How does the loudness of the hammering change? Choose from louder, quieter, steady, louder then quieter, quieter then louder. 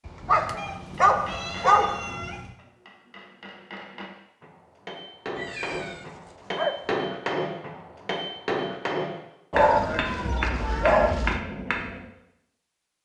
louder.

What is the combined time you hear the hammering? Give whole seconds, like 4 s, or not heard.
11 s.